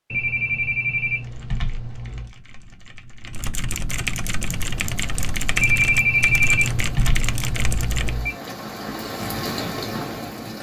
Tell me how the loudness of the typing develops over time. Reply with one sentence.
The loudness of the typing goes up.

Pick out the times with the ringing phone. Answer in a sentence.
You can hear the ringing phone from 0.1 to 2.3 s and from 5.5 to 8.3 s.